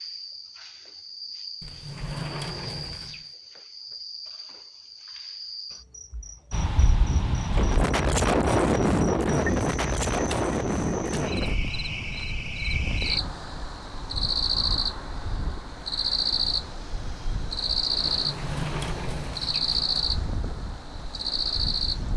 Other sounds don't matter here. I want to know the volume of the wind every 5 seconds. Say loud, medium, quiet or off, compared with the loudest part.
off, loud, medium, quiet, quiet.